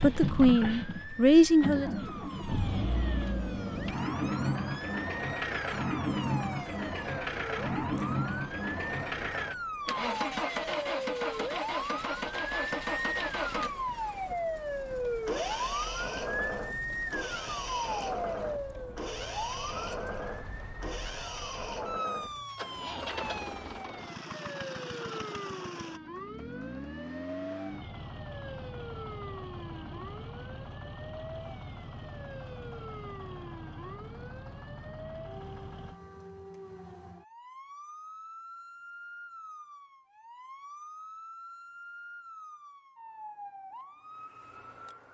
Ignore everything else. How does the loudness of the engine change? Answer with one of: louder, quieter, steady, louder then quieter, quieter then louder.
quieter.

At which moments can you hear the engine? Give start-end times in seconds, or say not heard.
0.0-36.0.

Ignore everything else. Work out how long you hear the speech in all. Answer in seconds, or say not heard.
2 s.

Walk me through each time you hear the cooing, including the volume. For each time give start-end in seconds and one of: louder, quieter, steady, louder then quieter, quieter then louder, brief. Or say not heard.
not heard.